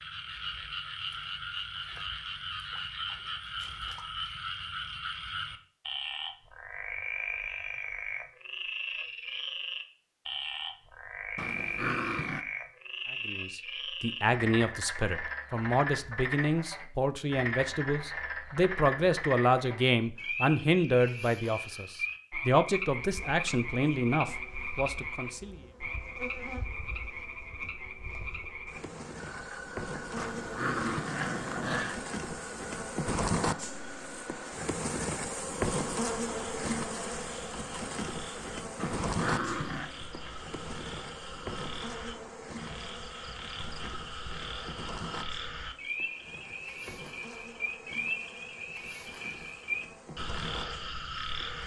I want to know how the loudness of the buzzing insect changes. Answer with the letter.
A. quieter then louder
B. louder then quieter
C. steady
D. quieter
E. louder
B.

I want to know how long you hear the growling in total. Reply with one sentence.
You can hear the growling for 4 seconds altogether.